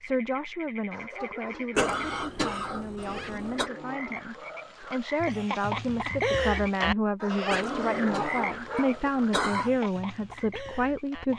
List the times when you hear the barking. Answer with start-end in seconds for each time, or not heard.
0.9-2.8, 7.2-9.1.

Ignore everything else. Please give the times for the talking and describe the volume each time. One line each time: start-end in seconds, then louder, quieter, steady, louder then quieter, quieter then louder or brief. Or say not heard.
0.0-11.3 louder.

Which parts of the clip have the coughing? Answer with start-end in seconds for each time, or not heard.
1.8-3.7, 7.5-9.7.